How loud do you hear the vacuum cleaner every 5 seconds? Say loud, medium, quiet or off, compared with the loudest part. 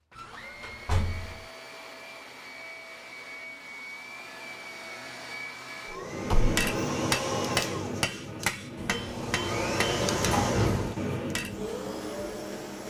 medium, loud, loud.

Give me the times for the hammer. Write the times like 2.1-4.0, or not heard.
6.0-11.7.